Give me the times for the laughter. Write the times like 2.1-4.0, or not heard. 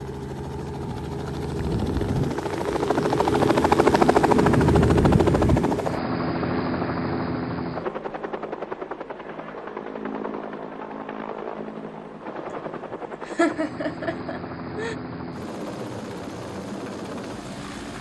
12.5-14.9.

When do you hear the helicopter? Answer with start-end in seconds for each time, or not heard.
0.0-17.9.